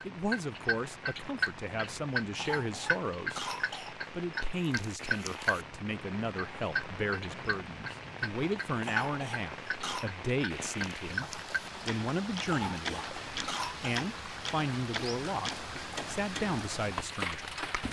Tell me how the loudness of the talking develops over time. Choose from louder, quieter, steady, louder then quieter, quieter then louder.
steady.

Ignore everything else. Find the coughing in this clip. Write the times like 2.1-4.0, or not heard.
2.4-4.0, 8.8-10.1, 12.4-13.9.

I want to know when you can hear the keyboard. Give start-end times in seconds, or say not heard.
not heard.